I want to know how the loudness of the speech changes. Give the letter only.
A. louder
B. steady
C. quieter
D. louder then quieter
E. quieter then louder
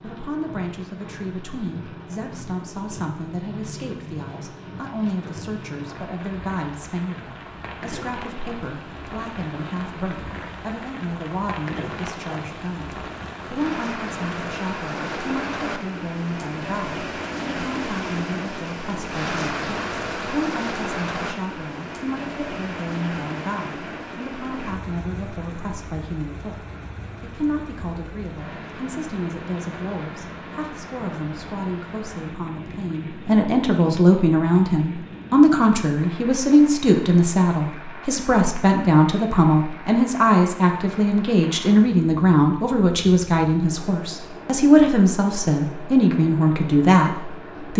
A.